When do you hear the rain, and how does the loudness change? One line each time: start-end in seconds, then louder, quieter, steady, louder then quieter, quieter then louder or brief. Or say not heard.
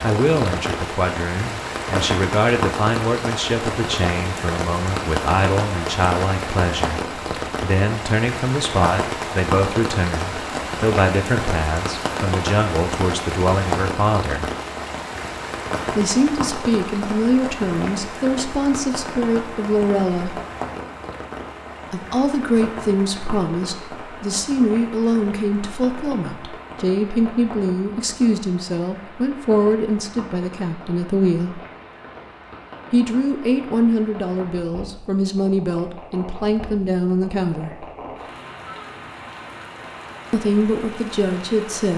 0.0-41.9 quieter.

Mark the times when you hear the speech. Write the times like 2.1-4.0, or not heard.
0.0-14.4, 15.9-20.4, 21.9-31.6, 32.9-37.9, 40.3-41.9.